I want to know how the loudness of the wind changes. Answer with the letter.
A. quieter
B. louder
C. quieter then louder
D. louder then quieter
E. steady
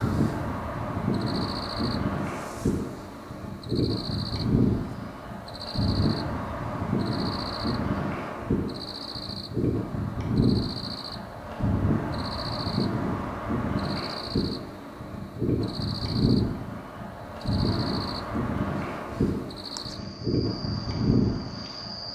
E.